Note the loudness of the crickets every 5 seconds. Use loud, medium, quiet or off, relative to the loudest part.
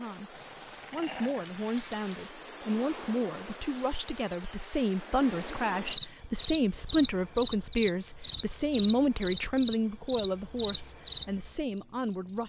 medium, loud, loud.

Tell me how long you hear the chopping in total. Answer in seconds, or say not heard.
not heard.